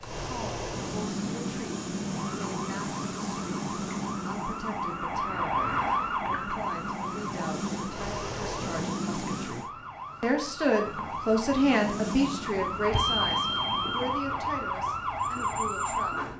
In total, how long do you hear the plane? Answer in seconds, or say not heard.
12 s.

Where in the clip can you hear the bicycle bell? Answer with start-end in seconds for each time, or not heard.
12.9-14.1.